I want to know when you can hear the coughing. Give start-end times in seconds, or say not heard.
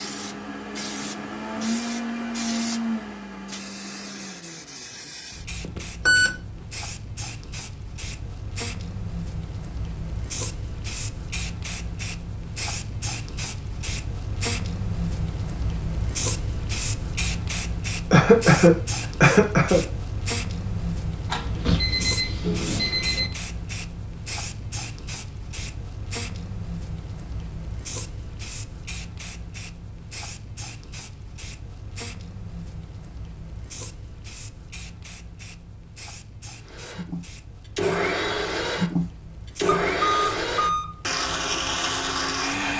18.1-19.9.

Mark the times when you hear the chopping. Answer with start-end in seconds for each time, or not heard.
not heard.